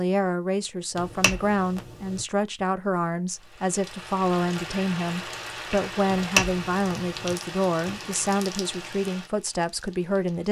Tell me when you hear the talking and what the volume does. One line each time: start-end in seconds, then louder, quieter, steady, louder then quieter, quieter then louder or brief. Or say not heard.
0.0-10.4 steady.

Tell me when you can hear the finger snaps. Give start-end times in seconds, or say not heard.
0.9-2.2, 6.0-7.3.